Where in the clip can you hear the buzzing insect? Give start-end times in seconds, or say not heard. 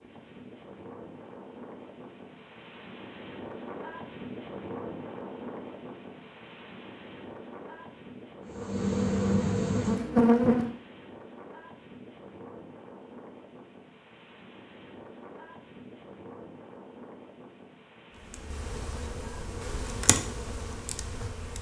8.4-10.7, 18.3-21.5.